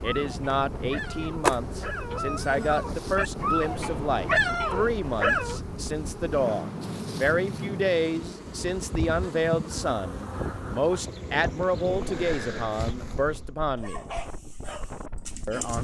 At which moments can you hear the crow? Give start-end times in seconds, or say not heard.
not heard.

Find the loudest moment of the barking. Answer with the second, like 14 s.
4 s.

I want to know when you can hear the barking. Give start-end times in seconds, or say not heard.
0.0-5.6, 13.8-15.8.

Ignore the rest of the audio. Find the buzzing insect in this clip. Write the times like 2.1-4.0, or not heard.
0.0-13.5.